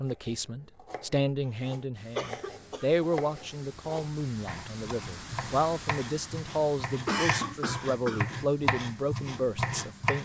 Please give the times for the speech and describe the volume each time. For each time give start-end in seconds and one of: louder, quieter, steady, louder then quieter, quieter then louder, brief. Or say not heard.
0.0-10.2 steady.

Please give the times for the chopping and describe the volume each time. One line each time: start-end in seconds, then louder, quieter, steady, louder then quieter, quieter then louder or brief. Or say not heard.
0.1-10.2 louder.